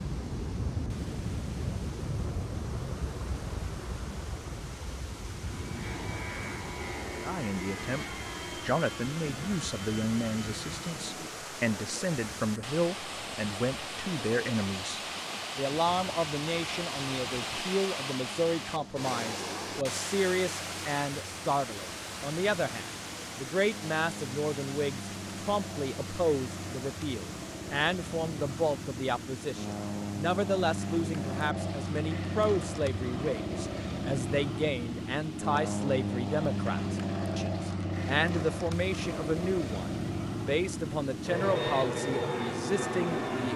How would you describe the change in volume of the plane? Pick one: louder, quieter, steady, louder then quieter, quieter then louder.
quieter then louder.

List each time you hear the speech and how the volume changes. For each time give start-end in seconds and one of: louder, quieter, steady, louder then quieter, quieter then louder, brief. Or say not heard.
7.2-43.5 steady.